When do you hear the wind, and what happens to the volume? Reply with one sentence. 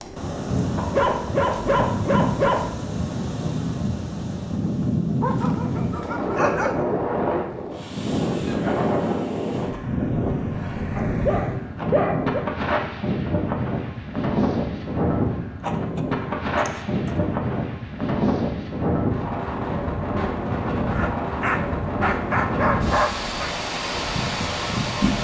The wind can be heard from 0.0 to 25.1 s, at a steady volume.